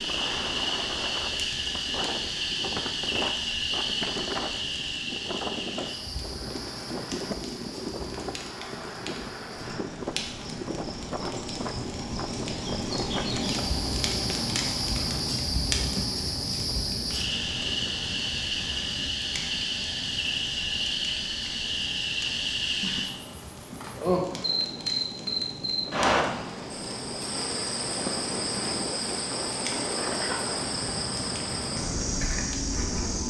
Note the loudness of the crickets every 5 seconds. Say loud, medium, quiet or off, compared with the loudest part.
loud, medium, medium, loud, loud, loud, loud.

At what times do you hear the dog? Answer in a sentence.
The dog can't be heard in this clip.